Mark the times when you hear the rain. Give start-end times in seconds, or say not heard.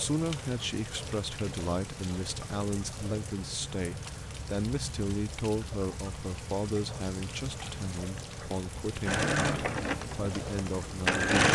0.0-11.2.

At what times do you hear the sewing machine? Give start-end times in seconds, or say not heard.
9.1-11.4.